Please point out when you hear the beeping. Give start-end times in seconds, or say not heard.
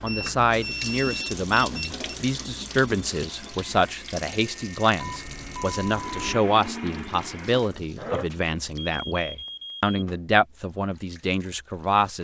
0.1-1.9, 5.0-6.3, 8.3-10.1.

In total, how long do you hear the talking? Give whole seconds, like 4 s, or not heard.
12 s.